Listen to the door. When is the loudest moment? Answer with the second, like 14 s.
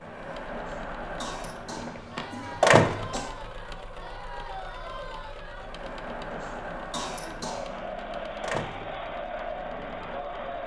3 s.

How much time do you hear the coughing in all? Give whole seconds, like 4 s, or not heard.
4 s.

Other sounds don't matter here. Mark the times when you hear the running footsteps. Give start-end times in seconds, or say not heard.
not heard.